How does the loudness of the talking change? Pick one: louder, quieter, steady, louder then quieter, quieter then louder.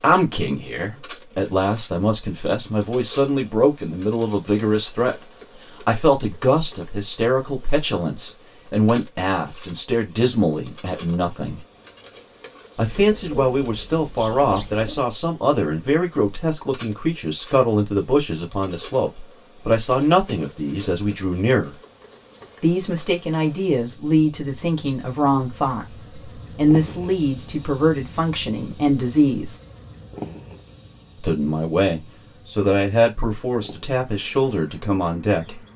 steady.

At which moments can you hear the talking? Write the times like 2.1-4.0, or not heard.
0.0-5.2, 5.8-11.6, 12.8-21.8, 22.6-29.6, 31.2-35.6.